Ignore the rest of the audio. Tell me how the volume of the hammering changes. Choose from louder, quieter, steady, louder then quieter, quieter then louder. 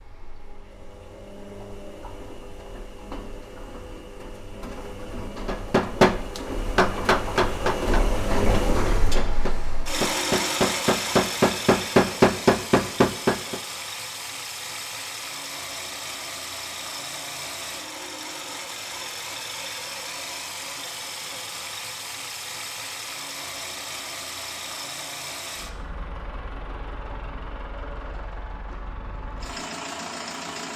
quieter then louder.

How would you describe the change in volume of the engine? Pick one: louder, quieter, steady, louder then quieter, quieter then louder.
louder then quieter.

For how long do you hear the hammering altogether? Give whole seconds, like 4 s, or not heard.
8 s.